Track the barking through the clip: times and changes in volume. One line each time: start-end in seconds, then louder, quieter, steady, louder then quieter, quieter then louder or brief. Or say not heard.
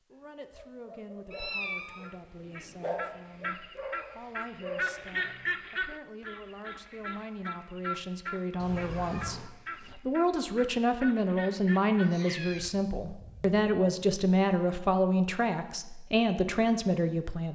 0.1-5.5 louder.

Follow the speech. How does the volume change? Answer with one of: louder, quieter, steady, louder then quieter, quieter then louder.
louder.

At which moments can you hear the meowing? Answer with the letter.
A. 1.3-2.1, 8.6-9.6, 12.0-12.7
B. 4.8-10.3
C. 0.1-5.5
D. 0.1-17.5
A.